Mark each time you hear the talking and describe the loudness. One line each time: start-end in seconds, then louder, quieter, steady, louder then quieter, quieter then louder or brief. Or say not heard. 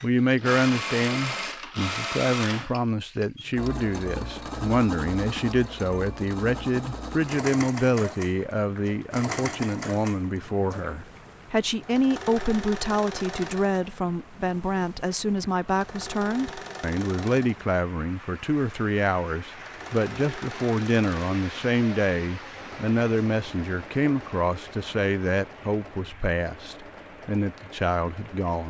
0.0-28.6 steady.